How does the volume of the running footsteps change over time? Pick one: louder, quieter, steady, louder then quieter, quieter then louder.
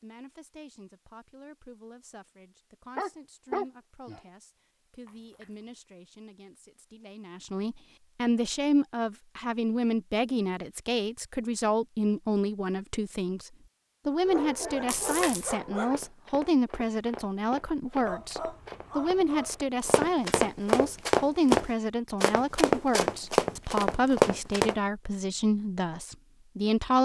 louder.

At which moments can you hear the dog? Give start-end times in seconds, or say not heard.
3.0-4.2, 14.2-16.0, 18.0-19.6.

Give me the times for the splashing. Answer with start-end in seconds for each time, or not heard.
5.0-5.7, 14.8-15.6.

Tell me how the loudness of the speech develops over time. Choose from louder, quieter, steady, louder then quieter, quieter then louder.
louder.